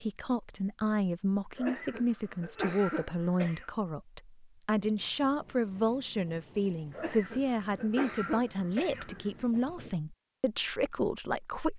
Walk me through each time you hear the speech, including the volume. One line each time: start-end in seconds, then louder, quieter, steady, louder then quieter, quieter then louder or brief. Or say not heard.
0.0-11.7 steady.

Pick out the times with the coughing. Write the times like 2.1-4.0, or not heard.
1.6-3.7, 6.9-9.3.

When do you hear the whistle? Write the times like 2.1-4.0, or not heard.
not heard.